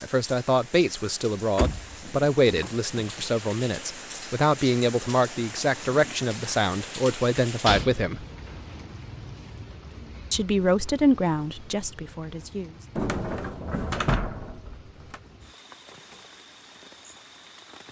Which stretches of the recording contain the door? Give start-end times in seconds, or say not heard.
1.6-3.2, 7.7-8.1, 12.9-15.2.